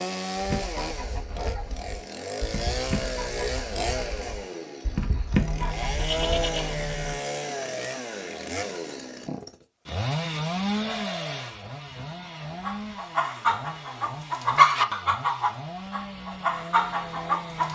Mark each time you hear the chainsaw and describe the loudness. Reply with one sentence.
The chainsaw can be heard from 0.0 to 17.7 s, getting quieter.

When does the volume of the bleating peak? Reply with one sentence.
The loudest moment of the bleating is at 6 seconds.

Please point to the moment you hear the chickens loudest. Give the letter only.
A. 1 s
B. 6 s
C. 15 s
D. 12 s
C.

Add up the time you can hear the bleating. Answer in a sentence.
The bleating can be heard for 4 seconds in total.